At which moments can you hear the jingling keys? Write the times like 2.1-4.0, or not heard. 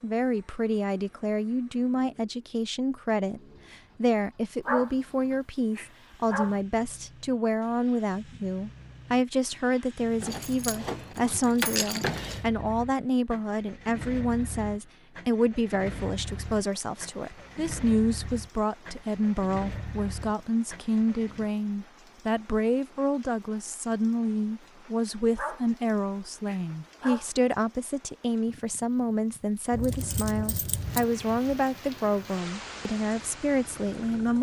10.2-12.4, 29.7-31.1.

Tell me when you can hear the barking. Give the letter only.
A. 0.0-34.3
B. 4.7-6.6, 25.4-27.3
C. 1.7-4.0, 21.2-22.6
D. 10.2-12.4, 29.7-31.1
B.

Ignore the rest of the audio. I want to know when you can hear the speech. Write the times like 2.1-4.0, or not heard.
0.0-34.3.